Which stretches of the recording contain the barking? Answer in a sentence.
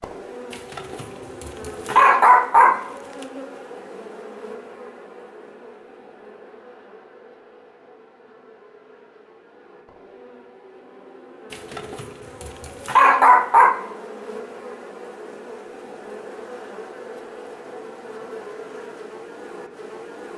The barking can be heard from 0.5 to 2.8 s and from 11.5 to 13.8 s.